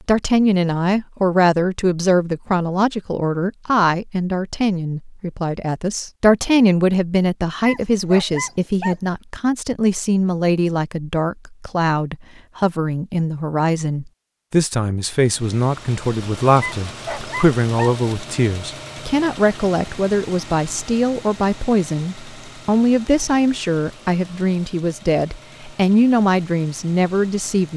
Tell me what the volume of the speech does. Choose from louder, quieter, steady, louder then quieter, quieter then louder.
steady.